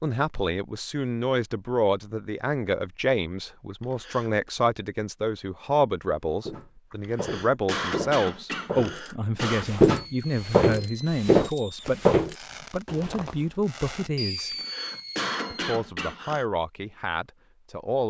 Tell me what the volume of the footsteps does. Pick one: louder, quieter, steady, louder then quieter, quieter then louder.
louder.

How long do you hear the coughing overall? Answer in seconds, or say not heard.
6 s.